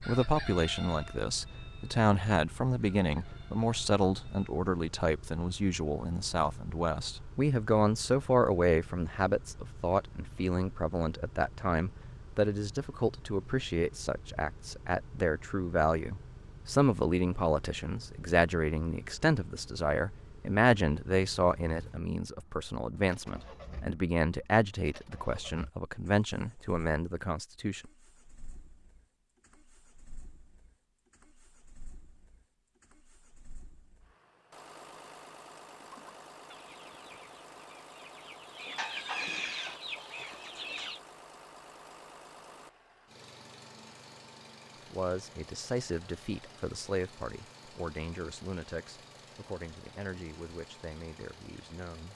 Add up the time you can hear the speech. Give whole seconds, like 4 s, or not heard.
35 s.